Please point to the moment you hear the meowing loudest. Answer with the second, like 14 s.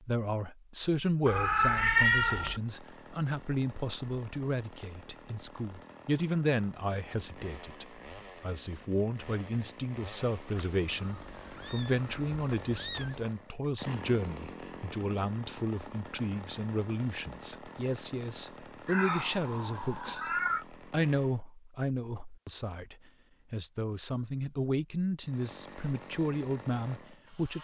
2 s.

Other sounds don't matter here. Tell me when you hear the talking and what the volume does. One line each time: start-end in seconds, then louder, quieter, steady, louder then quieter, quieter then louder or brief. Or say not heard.
0.0-27.6 steady.